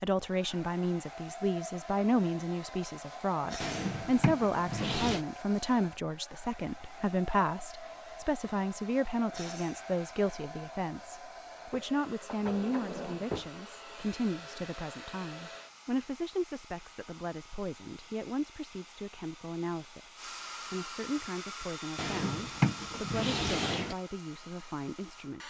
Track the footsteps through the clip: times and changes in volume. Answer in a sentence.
You can't hear the footsteps here.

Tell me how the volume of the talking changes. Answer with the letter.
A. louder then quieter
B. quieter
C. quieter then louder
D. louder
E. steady
B.